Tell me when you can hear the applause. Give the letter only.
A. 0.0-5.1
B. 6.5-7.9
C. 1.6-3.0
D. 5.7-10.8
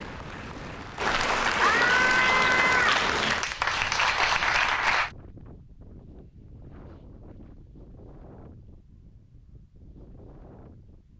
A.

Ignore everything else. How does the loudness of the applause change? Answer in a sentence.
The volume of the applause goes up.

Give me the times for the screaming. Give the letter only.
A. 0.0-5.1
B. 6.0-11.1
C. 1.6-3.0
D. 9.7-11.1
C.